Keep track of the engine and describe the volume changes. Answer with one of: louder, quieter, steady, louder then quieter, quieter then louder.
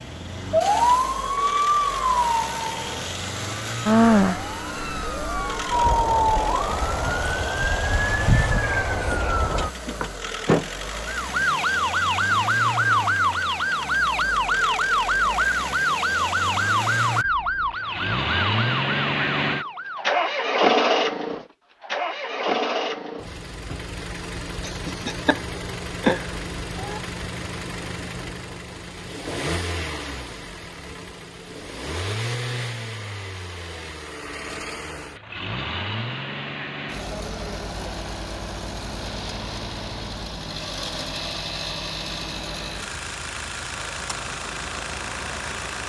louder then quieter.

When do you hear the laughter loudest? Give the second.
26 s.